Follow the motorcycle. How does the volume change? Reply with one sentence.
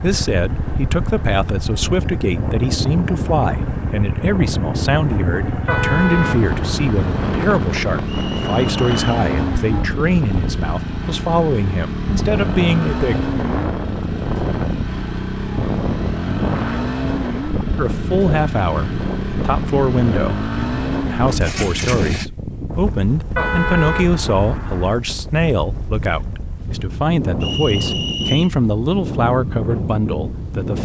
The volume of the motorcycle stays about the same.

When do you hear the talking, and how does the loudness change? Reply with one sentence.
The talking can be heard from 0.0 to 13.2 s, at a steady volume; and from 17.8 to 30.8 s, at a steady volume.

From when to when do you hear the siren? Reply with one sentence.
The siren can't be heard in this clip.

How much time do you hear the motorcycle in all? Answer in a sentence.
The motorcycle can be heard for 22 seconds in total.